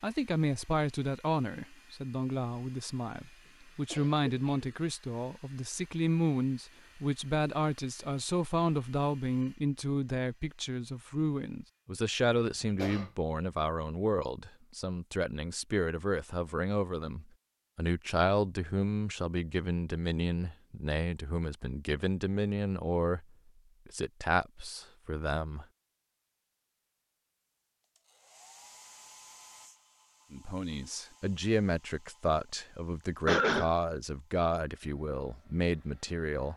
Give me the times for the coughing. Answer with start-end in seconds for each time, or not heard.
3.5-4.8, 12.3-13.1, 33.2-33.7.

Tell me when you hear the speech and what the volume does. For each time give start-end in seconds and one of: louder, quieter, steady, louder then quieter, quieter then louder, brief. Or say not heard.
0.0-23.2 steady
23.9-25.6 brief
30.3-36.5 steady.